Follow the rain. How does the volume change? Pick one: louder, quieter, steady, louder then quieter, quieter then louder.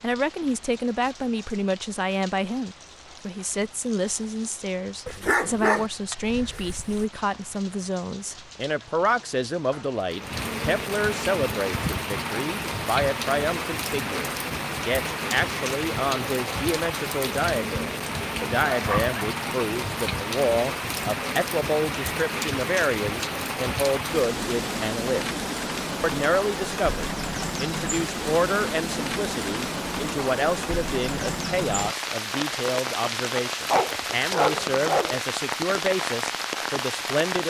louder.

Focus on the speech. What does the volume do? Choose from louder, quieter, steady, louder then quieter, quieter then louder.
steady.